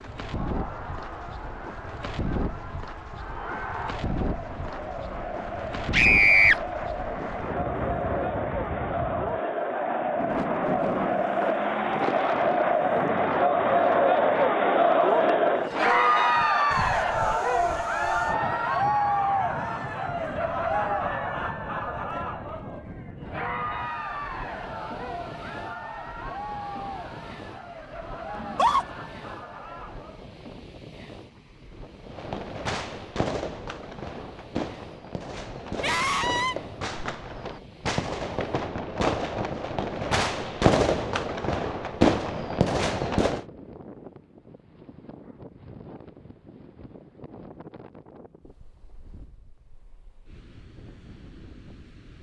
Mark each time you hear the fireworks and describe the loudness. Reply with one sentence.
The fireworks can be heard from 32.0 to 43.5 s, getting louder.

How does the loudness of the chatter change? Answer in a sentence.
The volume of the chatter goes up, then down.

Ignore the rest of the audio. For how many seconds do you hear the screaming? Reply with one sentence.
The screaming can be heard for 2 seconds in total.